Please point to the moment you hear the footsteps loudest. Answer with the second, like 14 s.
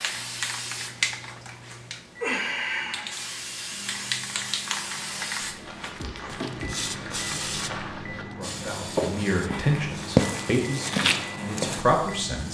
10 s.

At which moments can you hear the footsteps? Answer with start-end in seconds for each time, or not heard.
5.4-11.8.